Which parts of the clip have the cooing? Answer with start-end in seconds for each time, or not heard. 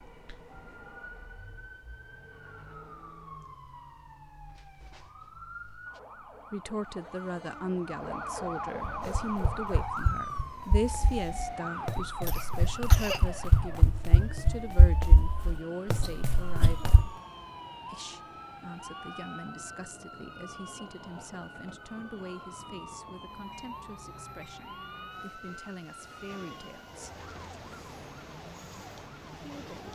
not heard.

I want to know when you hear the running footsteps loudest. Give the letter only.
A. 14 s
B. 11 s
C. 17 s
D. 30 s
A.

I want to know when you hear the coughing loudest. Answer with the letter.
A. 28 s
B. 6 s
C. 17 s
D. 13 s
D.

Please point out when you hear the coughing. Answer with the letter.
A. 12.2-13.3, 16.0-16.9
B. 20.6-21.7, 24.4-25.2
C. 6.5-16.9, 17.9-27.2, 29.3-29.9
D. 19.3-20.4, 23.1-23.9
A.